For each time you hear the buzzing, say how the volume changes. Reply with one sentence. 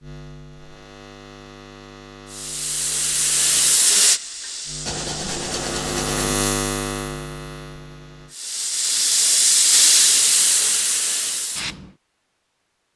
You can hear the buzzing from 0.0 to 8.3 s, getting louder.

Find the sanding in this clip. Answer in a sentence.
You can hear the sanding from 4.8 to 6.4 s.